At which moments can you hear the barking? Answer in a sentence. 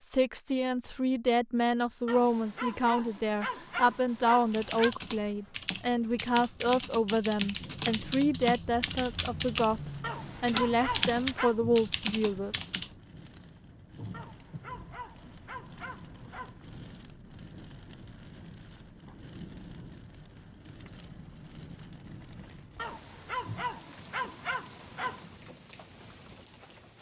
The barking can be heard from 2.0 to 5.0 s, from 10.0 to 11.6 s, from 14.1 to 16.6 s and from 22.8 to 25.3 s.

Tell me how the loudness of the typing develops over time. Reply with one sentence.
The loudness of the typing goes up.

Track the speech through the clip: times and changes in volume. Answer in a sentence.
The speech can be heard from 0.0 to 12.6 s, at a steady volume.